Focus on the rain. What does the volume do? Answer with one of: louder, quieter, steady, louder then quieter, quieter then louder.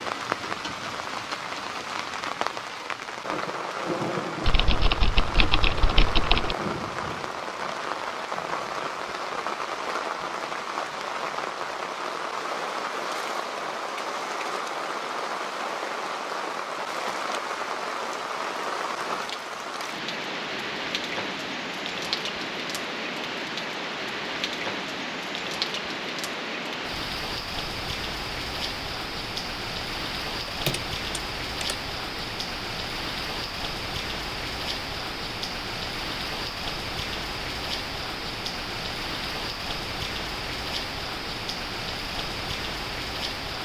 steady.